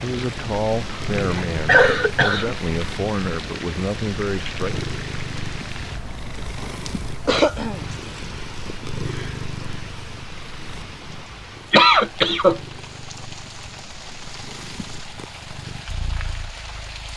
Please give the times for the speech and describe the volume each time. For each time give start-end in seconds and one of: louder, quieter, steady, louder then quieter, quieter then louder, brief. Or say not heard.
0.0-4.8 steady.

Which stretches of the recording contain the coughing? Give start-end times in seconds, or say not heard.
1.1-2.5, 7.2-7.8, 11.7-12.6.